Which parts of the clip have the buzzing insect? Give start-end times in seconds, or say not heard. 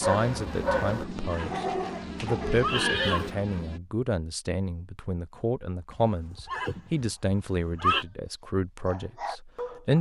0.0-3.8.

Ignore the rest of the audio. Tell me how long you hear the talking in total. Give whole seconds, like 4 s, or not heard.
10 s.